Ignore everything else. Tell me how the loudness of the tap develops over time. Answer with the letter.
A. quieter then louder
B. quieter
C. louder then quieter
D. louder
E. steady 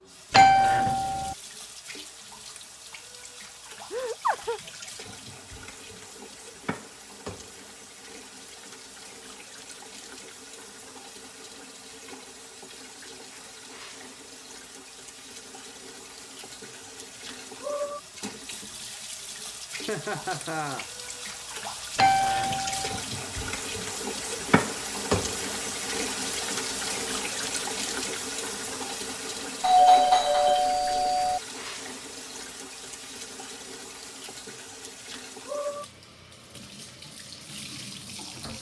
C.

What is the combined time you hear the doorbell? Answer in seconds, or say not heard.
4 s.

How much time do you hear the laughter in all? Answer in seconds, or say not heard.
2 s.